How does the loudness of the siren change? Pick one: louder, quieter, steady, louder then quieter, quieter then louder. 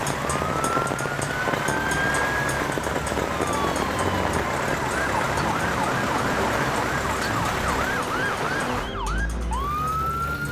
steady.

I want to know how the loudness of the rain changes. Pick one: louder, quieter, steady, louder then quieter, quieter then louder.
steady.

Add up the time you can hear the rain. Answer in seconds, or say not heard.
9 s.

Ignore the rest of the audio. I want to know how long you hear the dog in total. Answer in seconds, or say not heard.
not heard.